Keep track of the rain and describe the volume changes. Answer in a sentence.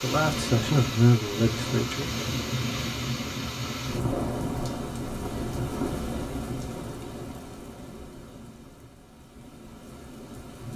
The volume of the rain goes down.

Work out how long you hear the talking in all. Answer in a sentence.
You can hear the talking for 2 seconds altogether.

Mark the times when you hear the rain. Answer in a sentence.
You can hear the rain from 0.0 to 10.7 s.